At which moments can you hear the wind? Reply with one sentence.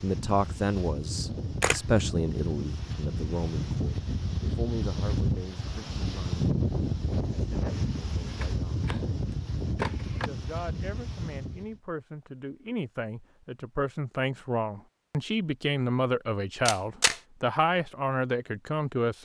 You can hear the wind from 0.0 to 11.8 s.